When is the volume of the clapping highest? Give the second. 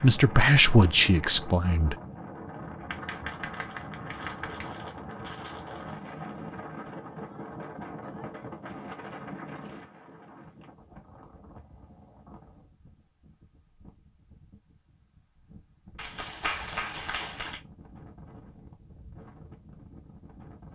17 s.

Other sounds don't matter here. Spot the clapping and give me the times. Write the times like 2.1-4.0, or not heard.
2.8-4.8, 15.9-17.6.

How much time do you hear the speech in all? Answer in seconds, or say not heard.
2 s.